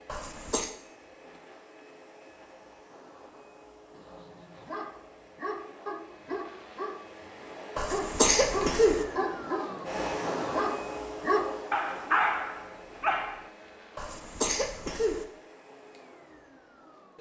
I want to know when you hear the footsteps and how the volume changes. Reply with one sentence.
The footsteps can't be heard in this clip.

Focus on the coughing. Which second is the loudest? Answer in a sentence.
The loudest moment of the coughing is at 8 seconds.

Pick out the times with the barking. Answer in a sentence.
You can hear the barking from 4.0 to 13.4 s.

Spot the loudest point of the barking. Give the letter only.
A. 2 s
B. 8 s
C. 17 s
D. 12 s
D.